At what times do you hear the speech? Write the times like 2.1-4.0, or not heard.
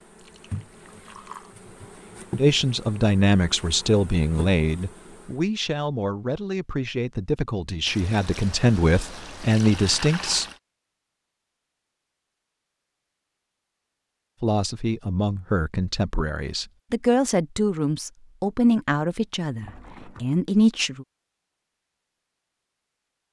2.4-10.4, 14.4-21.1.